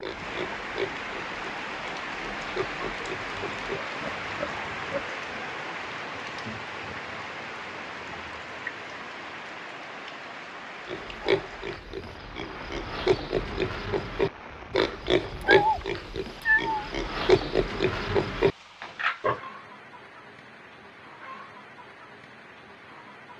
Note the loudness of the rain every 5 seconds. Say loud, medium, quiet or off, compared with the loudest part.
loud, loud, medium, quiet, quiet.